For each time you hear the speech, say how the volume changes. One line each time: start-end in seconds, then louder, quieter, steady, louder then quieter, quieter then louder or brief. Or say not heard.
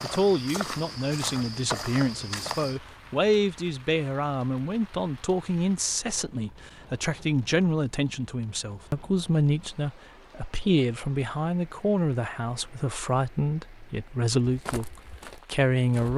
0.0-16.1 steady.